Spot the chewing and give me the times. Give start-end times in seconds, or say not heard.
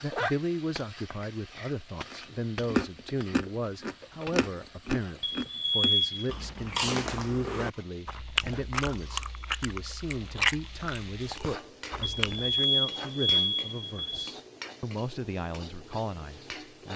2.1-12.7.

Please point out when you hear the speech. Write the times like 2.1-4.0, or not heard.
0.0-16.9.